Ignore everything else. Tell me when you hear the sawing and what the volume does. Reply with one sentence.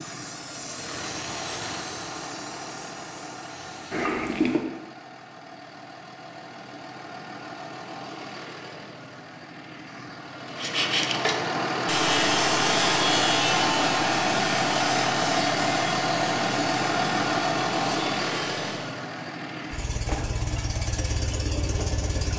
You can hear the sawing from 10.4 to 19.0 s, getting quieter.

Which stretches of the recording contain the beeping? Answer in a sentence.
You can hear the beeping from 3.9 to 4.7 s.